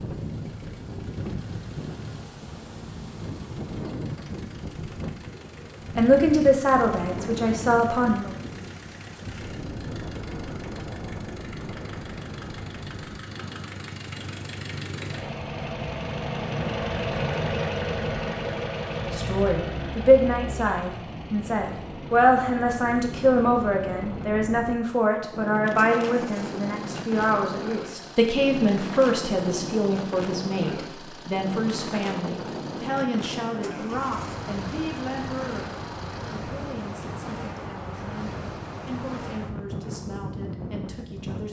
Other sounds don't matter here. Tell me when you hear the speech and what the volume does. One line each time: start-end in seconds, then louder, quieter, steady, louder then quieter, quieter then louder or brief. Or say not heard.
6.0-8.3 brief
19.1-41.4 quieter.